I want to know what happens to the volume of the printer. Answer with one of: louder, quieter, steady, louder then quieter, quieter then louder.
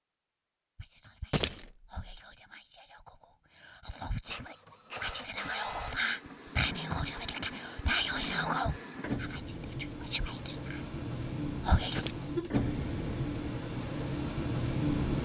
louder.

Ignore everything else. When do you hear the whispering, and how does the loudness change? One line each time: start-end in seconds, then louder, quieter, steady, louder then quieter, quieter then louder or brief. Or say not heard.
0.8-10.8 louder
11.6-12.1 brief.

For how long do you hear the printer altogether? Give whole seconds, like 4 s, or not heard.
11 s.